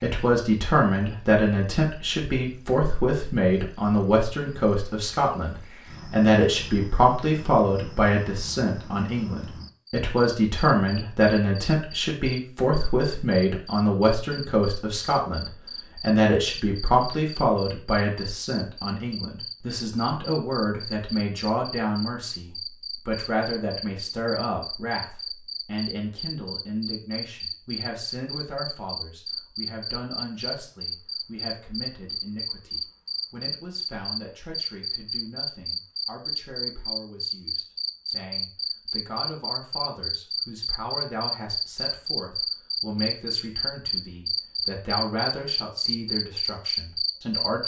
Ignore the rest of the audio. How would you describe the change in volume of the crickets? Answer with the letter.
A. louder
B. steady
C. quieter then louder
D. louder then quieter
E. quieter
A.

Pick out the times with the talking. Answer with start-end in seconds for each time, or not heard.
0.0-47.6.